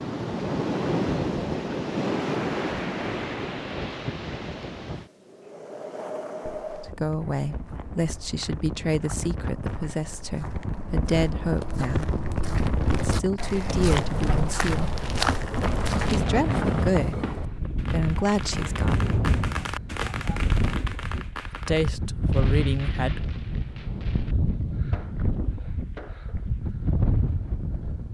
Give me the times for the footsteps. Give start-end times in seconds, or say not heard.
6.0-16.2.